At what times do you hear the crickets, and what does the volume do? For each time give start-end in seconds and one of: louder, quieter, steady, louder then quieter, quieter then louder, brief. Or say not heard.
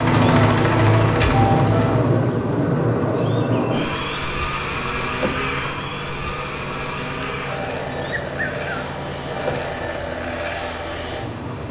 0.1-9.6 steady.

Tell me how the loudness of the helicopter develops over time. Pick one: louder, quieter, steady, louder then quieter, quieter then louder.
quieter.